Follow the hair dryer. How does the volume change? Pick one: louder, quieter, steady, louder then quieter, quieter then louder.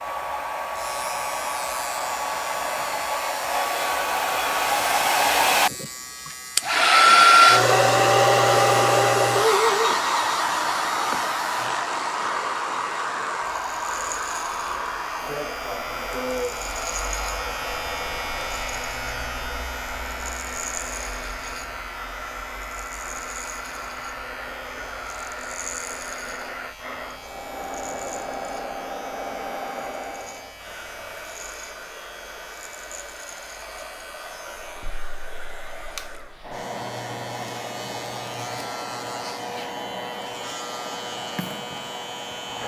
quieter.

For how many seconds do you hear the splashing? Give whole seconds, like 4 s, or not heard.
not heard.